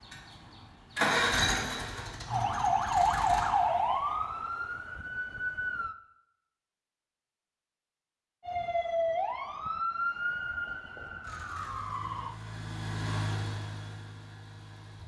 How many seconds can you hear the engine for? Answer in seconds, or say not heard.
7 s.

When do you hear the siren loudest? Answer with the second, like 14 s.
3 s.